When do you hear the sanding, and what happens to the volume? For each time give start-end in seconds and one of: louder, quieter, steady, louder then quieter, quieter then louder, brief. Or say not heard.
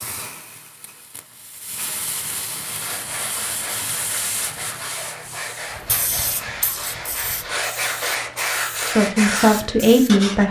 2.6-10.4 louder.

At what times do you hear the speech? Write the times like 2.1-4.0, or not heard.
8.8-10.4.